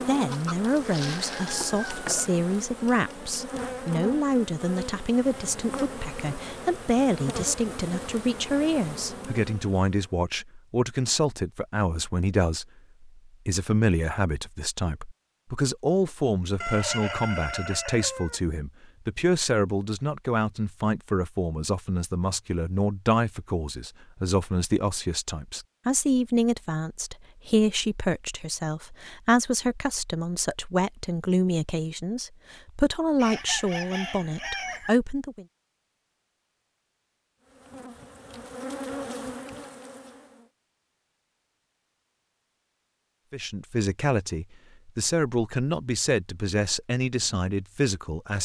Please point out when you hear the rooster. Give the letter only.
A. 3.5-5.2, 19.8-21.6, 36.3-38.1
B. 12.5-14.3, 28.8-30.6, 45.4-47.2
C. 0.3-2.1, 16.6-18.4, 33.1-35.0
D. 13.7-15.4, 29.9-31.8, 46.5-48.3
C.